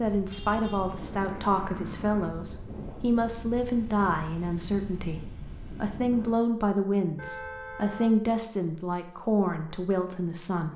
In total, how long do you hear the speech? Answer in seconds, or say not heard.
11 s.